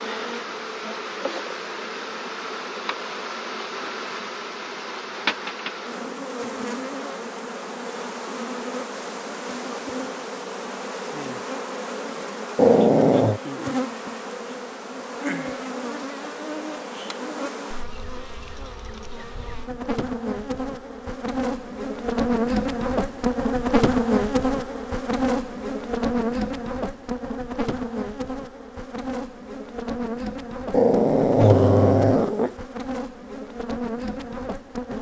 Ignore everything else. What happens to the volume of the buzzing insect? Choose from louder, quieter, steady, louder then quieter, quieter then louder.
louder then quieter.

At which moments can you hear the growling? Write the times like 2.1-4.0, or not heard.
12.6-13.4, 30.7-32.5.